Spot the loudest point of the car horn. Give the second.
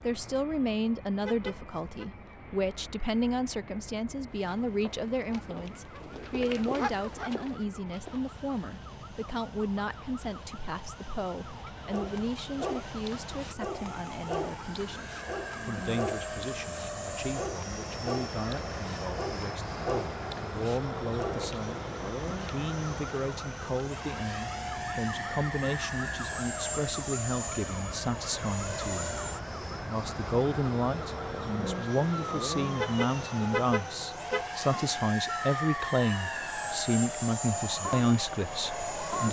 34 s.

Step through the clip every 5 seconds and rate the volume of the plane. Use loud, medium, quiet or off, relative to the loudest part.
quiet, quiet, medium, loud, loud, loud, loud, loud.